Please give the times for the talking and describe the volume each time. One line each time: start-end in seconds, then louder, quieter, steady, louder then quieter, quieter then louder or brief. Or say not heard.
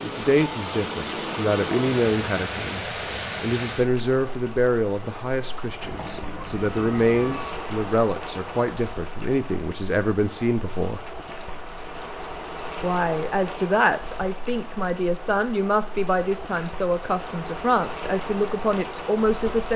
0.0-11.0 steady
12.8-19.7 steady.